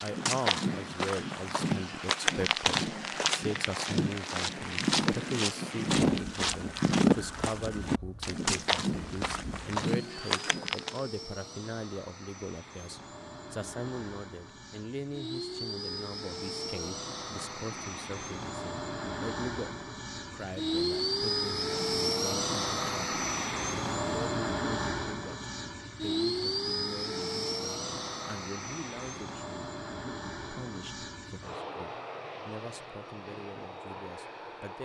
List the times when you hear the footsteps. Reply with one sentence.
You can hear the footsteps from 0.0 to 11.0 s.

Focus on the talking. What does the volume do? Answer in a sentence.
The loudness of the talking goes down.